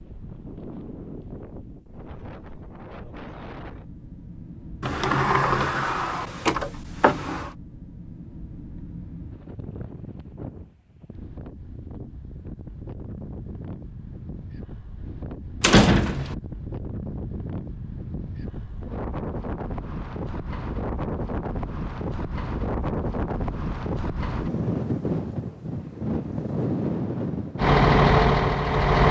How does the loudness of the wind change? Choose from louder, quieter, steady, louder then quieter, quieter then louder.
louder.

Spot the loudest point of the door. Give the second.
16 s.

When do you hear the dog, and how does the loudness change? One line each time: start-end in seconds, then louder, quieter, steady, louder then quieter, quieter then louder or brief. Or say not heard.
not heard.